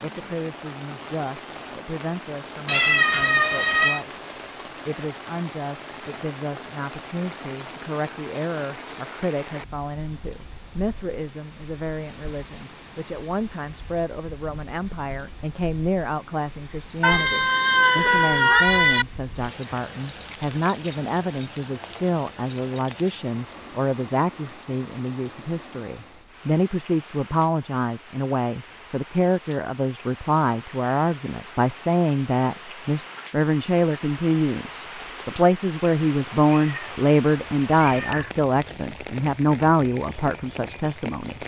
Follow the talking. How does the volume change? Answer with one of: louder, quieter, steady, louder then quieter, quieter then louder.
louder.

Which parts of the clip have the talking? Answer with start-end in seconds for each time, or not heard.
0.0-41.4.